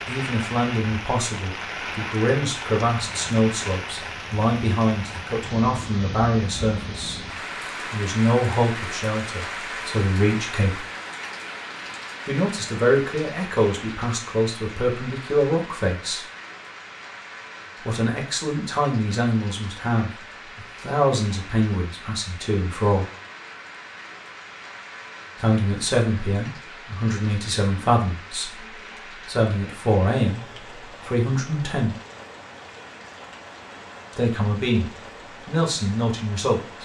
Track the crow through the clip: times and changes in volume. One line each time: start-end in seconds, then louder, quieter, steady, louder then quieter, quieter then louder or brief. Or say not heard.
not heard.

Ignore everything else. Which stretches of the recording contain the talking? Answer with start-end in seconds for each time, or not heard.
0.1-7.2, 7.9-10.8, 12.2-16.2, 17.8-23.1, 25.4-31.9, 34.1-36.7.